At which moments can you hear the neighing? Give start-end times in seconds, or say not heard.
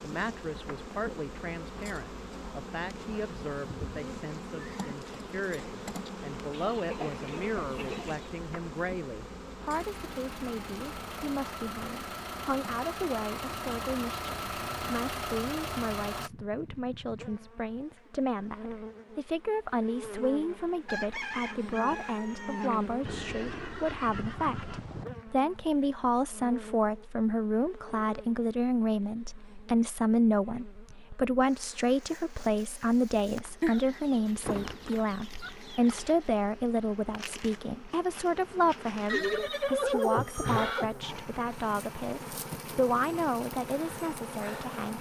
3.6-5.0, 23.1-25.1, 39.0-40.9.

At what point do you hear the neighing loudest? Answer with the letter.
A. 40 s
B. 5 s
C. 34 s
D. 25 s
A.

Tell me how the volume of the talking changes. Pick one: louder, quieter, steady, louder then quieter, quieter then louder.
louder.